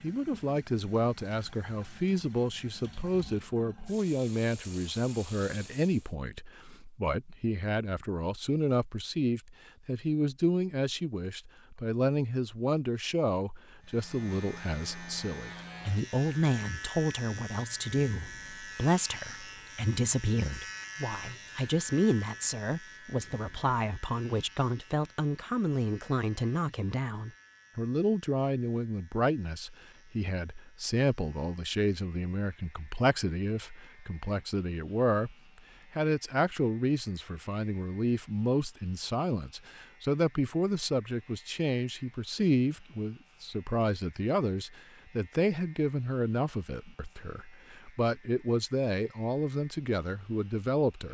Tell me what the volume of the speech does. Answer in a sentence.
The loudness of the speech stays about the same.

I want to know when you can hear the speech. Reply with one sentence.
You can hear the speech from 0.0 to 51.1 s.